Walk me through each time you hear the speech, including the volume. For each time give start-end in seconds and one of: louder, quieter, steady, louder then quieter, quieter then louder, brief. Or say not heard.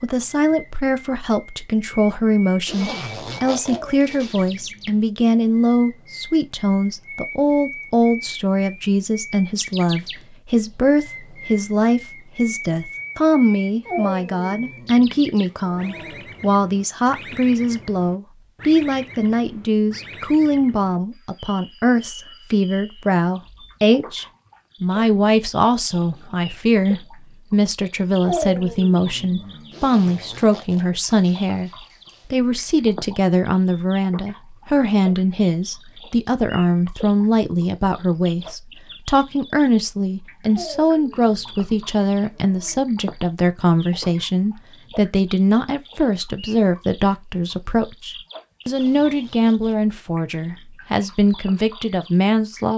0.0-31.7 steady
32.3-52.7 steady.